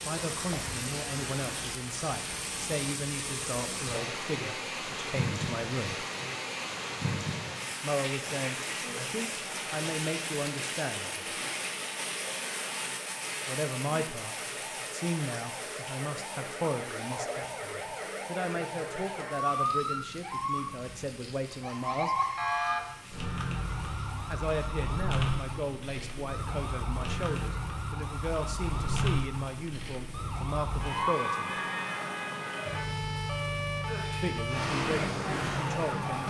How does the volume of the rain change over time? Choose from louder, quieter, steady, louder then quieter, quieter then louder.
quieter.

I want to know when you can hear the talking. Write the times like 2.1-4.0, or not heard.
0.1-6.0, 7.8-11.3, 13.4-22.1, 24.3-31.5, 34.1-36.2.